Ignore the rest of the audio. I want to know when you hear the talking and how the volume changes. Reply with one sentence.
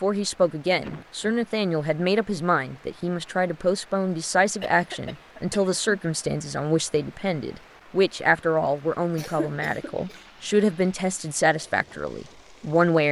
The talking can be heard from 0.0 to 13.0 s, at a steady volume.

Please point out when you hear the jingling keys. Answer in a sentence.
You can't hear the jingling keys here.